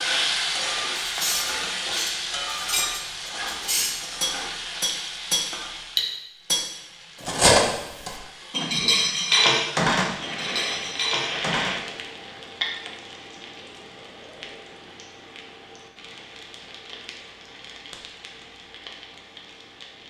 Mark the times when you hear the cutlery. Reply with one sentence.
You can hear the cutlery from 1.1 to 11.8 s.